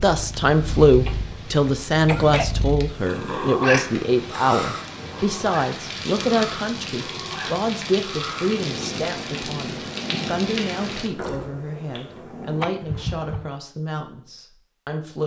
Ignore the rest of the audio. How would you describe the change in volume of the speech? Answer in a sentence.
The loudness of the speech goes down.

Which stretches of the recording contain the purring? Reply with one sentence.
You can hear the purring from 0.0 to 12.7 s.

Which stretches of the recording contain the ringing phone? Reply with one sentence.
You can't hear the ringing phone here.